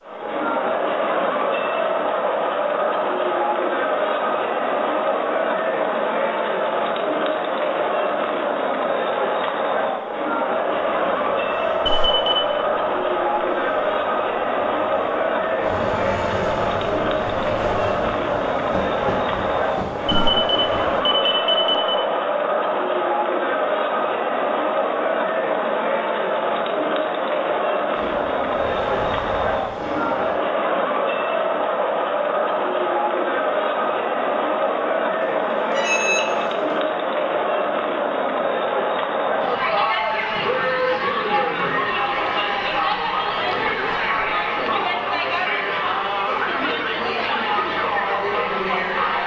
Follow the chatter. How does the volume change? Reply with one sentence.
The volume of the chatter stays about the same.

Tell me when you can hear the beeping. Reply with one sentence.
You can hear the beeping from 11.8 to 12.6 s, from 20.1 to 22.0 s and from 35.2 to 36.3 s.